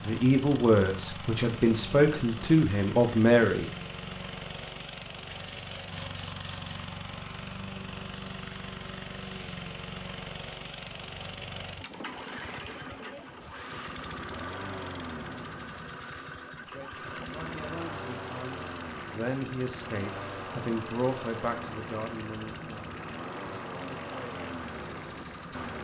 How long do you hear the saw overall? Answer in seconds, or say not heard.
2 s.